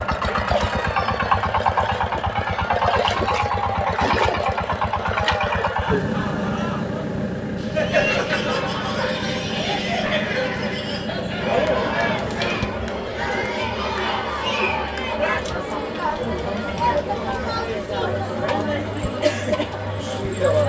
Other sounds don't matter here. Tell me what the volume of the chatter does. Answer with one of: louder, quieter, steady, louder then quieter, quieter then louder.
louder.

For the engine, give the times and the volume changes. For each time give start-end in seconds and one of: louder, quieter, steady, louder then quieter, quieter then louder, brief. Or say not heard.
0.0-12.8 quieter.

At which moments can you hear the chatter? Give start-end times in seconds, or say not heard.
0.1-20.6.